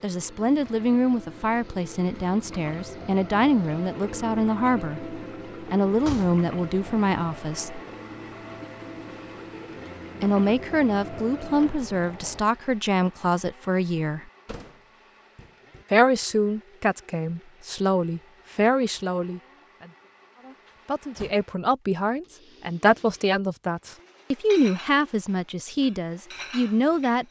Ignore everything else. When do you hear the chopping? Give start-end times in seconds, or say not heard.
not heard.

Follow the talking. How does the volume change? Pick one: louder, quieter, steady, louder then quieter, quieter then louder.
steady.